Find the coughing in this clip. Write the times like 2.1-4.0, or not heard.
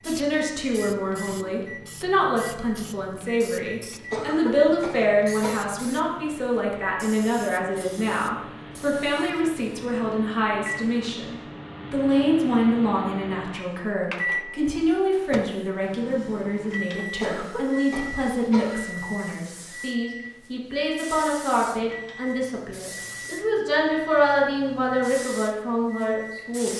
4.1-5.8, 17.2-18.9.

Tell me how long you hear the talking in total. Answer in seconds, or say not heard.
27 s.